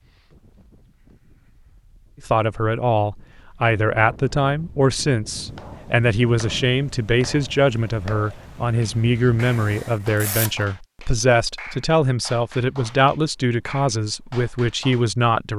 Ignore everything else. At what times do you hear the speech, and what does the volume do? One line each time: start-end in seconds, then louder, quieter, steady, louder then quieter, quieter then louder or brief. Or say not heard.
2.2-15.5 steady.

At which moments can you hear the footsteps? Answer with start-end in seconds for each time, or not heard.
not heard.